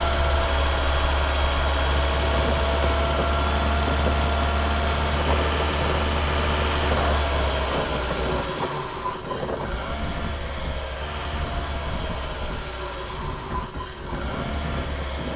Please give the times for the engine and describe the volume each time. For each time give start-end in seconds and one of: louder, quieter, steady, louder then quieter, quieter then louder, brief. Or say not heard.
0.0-15.3 quieter.